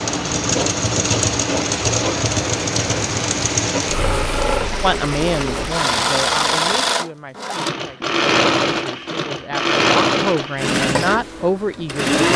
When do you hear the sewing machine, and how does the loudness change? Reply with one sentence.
You can hear the sewing machine from 0.0 to 12.3 s, at a steady volume.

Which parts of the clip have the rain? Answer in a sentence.
The rain can be heard from 0.0 to 7.0 s.